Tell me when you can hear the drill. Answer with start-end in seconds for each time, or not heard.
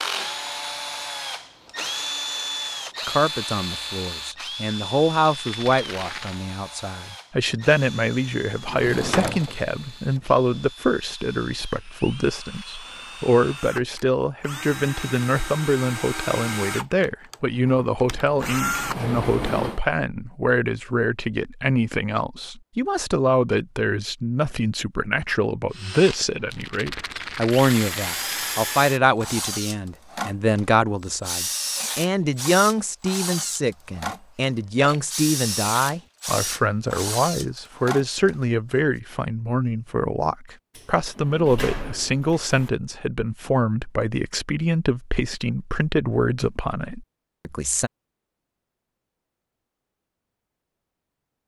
0.0-18.9, 25.7-38.4.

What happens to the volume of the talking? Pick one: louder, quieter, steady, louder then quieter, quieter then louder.
steady.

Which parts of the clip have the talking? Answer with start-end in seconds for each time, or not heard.
3.0-47.9.